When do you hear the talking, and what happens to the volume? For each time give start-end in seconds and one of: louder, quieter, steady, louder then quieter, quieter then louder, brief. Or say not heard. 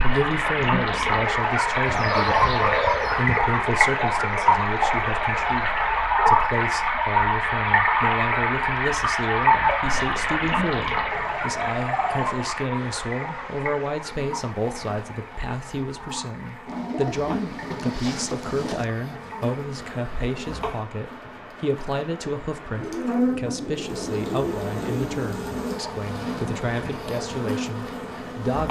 0.0-28.6 steady.